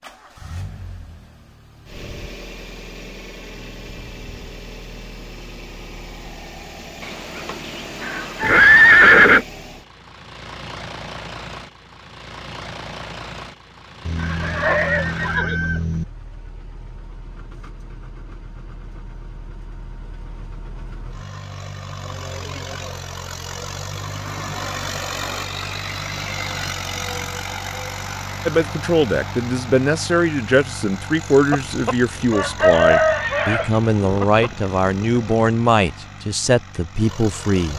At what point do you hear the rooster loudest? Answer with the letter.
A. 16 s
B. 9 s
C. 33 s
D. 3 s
C.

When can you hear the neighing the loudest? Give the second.
9 s.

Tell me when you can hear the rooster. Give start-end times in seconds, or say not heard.
7.0-8.9, 14.1-16.1, 31.5-35.2.